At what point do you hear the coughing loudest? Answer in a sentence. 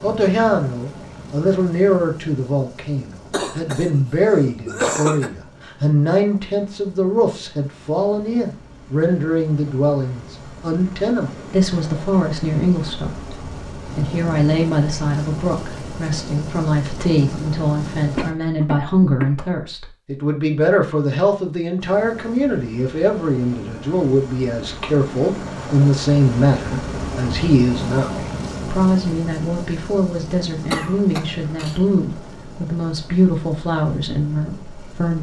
The loudest moment of the coughing is at 5 seconds.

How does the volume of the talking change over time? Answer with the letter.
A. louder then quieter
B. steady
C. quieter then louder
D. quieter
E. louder
B.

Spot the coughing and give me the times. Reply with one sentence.
You can hear the coughing from 3.3 to 5.3 s, from 18.1 to 19.3 s and from 30.7 to 31.8 s.